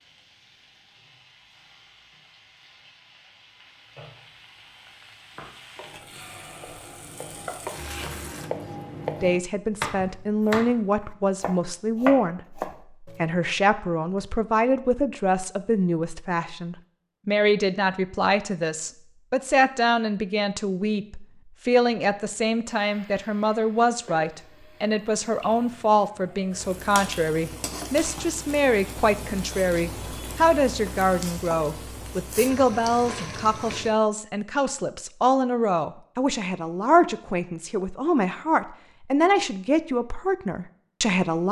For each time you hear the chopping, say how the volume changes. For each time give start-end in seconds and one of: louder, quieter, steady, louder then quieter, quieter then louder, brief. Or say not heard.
5.3-13.4 louder.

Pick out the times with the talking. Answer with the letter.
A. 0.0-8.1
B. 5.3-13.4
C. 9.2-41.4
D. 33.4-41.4
C.